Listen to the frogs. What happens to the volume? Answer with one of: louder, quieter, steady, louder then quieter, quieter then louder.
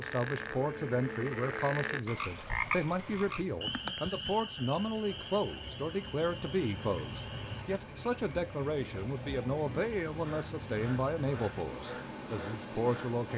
quieter.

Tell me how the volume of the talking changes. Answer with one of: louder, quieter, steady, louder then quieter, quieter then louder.
steady.